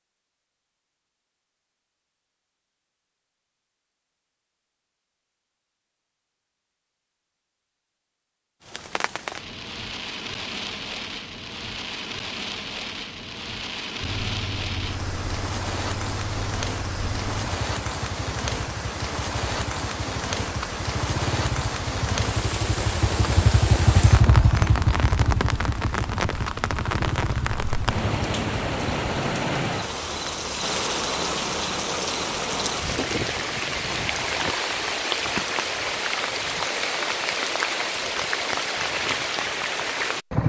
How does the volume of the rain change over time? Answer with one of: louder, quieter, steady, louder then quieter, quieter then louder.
louder.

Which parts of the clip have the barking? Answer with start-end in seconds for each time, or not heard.
not heard.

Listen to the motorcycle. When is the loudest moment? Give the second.
24 s.